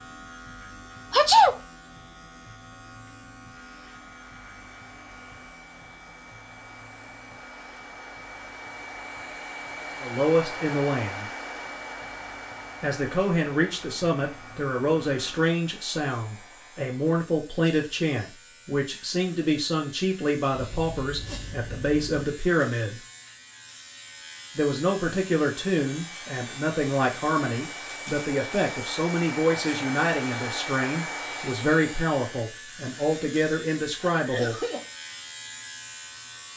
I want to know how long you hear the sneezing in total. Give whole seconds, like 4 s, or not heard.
3 s.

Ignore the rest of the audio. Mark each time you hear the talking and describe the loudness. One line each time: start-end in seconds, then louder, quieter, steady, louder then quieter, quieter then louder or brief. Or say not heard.
10.0-11.3 brief
12.8-23.0 steady
24.6-34.5 steady.